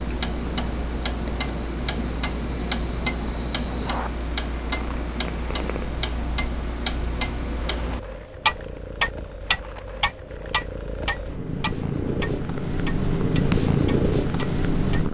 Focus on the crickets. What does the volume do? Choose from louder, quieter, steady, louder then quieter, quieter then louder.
louder then quieter.